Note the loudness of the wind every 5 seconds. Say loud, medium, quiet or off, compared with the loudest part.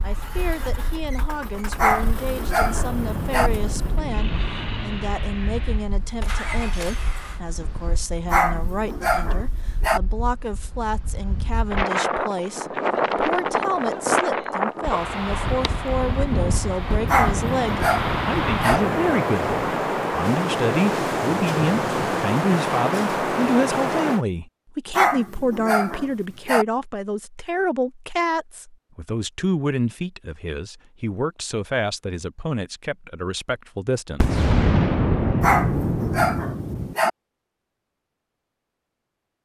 quiet, quiet, loud, loud, loud, off, off, off.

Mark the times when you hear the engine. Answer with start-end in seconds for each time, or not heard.
0.0-7.4.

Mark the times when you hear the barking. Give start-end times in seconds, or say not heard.
1.8-3.5, 8.3-10.0, 17.1-18.8, 24.9-26.6, 35.4-37.1.